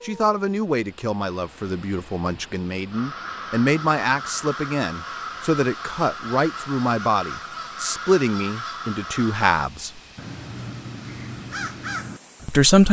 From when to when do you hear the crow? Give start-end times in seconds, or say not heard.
2.9-12.5.